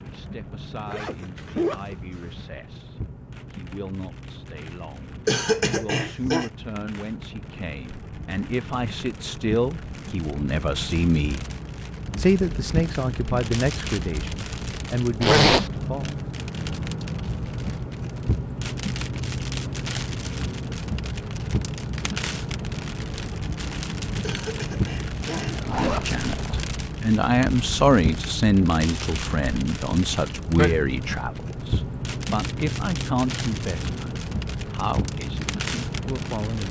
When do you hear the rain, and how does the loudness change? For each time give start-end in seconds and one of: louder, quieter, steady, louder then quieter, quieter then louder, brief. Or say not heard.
0.0-36.6 louder.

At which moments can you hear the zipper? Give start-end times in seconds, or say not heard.
0.8-2.3, 15.2-15.7, 25.4-26.6.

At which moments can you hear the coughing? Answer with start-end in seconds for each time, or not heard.
5.2-6.5, 24.2-26.1.